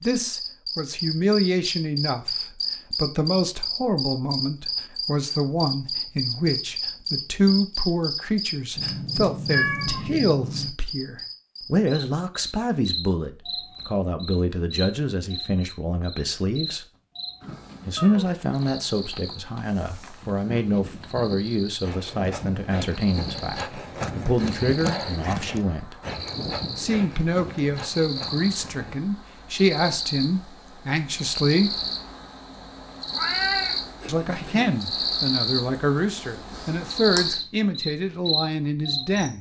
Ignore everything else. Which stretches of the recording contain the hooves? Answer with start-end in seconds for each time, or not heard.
17.4-29.0.